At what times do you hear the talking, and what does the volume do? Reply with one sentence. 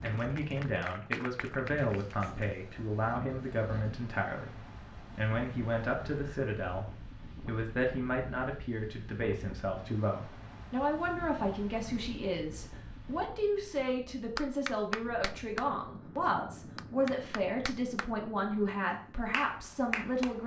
The talking can be heard from 0.0 to 20.4 s, at a steady volume.